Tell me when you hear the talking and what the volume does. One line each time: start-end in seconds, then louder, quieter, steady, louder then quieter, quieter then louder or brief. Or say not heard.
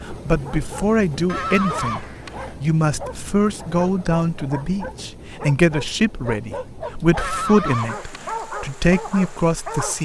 0.0-9.9 steady.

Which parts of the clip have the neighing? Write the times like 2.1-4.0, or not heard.
1.2-2.5, 7.2-8.4.